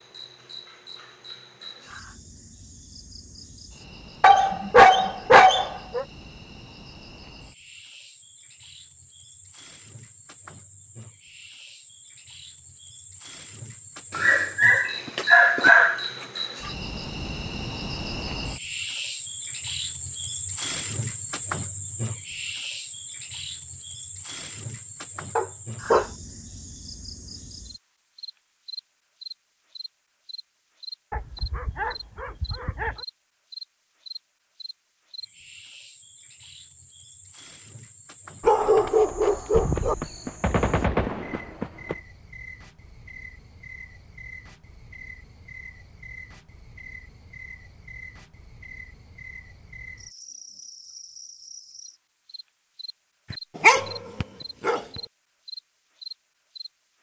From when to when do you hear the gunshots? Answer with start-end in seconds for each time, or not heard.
39.5-42.0.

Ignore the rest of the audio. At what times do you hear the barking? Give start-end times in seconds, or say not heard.
4.2-6.0, 14.2-16.2, 25.4-26.1, 31.1-33.0, 38.4-40.0, 53.3-54.8.